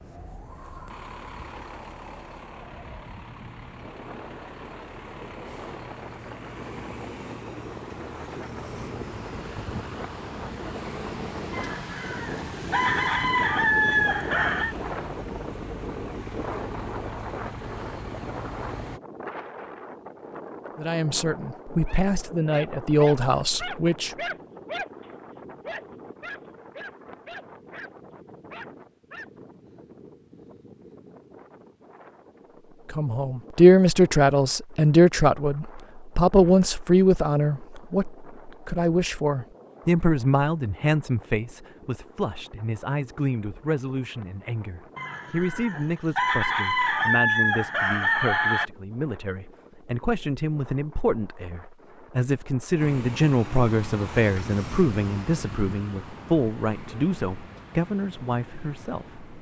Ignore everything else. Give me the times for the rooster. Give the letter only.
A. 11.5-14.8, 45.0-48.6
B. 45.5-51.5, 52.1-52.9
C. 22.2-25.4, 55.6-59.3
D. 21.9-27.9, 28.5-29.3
A.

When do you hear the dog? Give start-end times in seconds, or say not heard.
21.9-27.9, 28.5-29.3.